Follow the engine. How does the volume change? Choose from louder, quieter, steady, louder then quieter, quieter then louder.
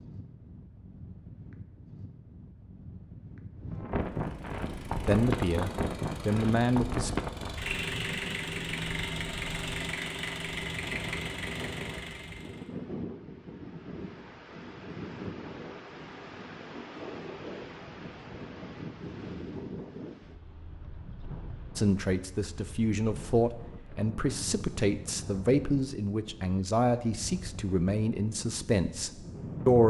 louder.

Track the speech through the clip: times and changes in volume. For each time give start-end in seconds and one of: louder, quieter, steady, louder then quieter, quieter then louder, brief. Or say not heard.
5.0-7.1 brief
21.8-29.8 steady.